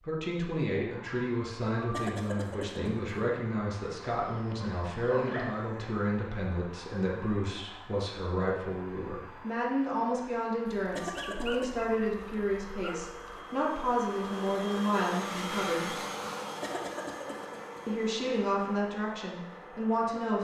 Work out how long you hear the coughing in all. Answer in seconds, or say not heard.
3 s.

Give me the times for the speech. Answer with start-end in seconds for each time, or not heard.
0.0-15.9, 17.9-20.3.